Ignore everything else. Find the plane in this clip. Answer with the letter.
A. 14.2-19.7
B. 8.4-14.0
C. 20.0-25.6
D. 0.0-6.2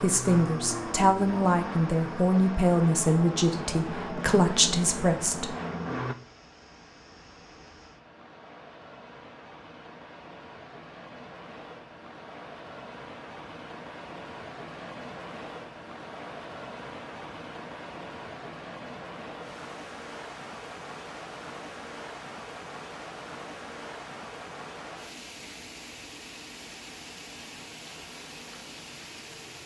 D.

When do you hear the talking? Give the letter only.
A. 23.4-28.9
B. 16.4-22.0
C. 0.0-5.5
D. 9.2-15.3
C.